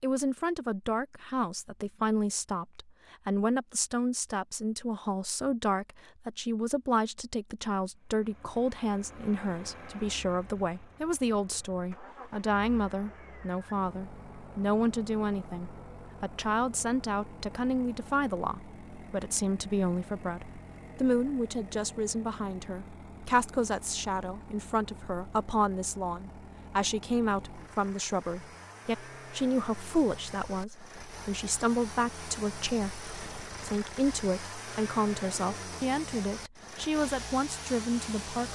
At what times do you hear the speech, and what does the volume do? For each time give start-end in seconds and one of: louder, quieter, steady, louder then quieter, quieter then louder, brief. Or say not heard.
0.0-38.4 steady.